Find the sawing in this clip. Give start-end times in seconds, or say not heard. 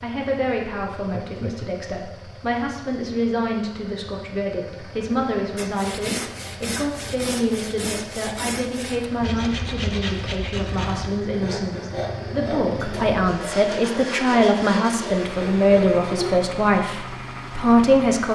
5.5-16.4.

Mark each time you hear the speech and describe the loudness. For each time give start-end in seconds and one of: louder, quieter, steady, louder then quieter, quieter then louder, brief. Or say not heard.
0.0-18.3 louder.